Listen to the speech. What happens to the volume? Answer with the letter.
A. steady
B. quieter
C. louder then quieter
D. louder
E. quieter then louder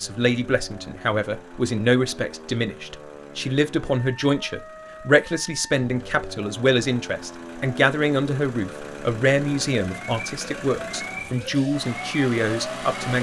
A.